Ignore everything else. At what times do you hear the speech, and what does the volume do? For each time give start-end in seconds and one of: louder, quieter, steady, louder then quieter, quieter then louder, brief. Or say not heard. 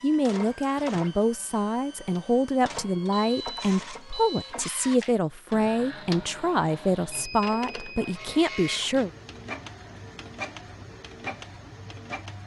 0.0-9.1 steady.